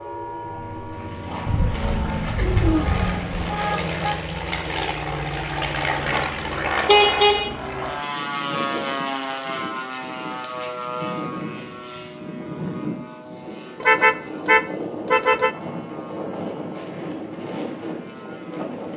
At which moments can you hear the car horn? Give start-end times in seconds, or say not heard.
2.6-4.2, 6.8-7.5, 13.8-15.6.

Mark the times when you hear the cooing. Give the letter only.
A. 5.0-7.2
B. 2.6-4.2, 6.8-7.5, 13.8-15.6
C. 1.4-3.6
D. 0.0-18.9
C.